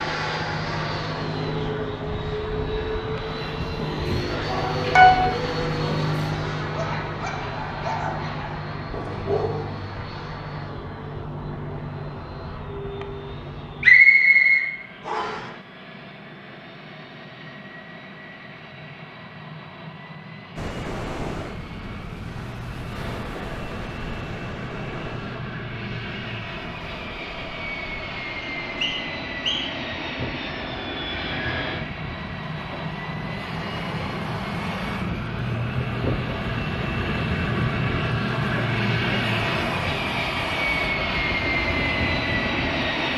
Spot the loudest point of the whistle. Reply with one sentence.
The volume of the whistle peaks at 14 seconds.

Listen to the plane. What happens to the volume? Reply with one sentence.
The volume of the plane goes down, then up.